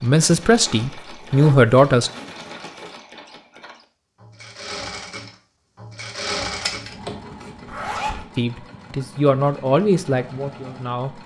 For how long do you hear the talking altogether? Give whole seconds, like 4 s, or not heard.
5 s.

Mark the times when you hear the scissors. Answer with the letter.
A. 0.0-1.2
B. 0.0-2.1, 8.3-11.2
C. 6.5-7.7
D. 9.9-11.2
C.